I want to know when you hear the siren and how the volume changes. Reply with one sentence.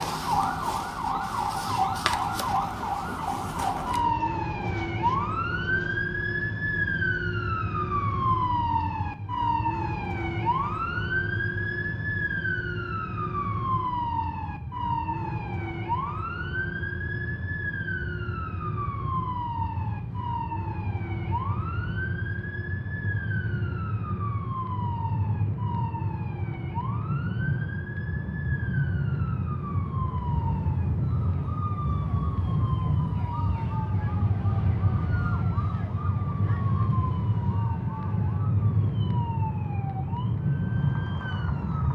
The siren can be heard from 0.0 to 41.9 s, getting quieter.